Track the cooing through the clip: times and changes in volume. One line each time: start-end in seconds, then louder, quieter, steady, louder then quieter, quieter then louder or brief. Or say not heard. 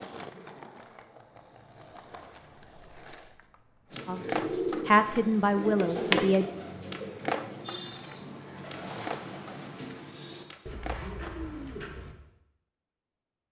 3.9-12.2 quieter.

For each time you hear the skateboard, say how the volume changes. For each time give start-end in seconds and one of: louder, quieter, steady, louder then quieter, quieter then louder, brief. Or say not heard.
0.0-11.3 louder then quieter.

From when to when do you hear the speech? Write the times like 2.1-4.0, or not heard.
4.0-6.5.